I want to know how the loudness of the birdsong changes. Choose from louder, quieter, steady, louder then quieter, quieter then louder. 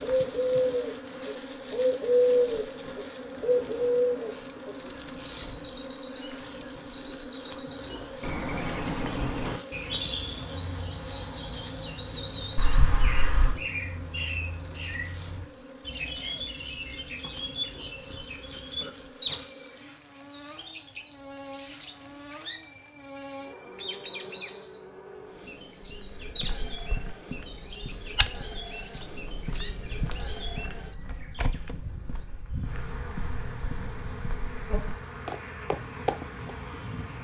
quieter.